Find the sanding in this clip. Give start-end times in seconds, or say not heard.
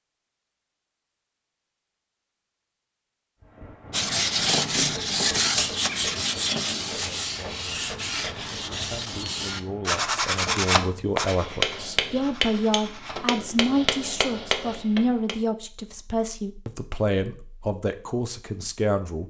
3.9-13.2.